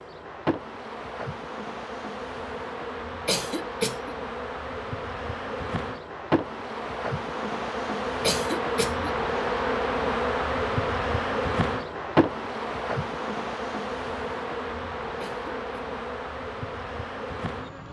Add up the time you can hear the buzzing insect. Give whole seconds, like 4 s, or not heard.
18 s.